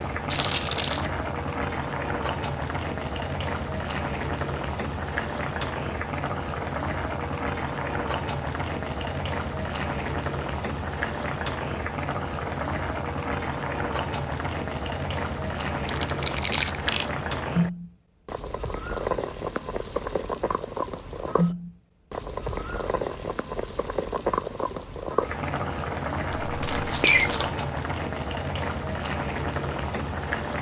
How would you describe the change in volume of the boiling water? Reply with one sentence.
The loudness of the boiling water stays about the same.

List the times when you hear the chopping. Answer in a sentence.
The chopping can't be heard in this clip.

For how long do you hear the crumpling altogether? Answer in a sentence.
You can hear the crumpling for 3 seconds altogether.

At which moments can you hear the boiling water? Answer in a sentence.
You can hear the boiling water from 0.0 to 30.5 s.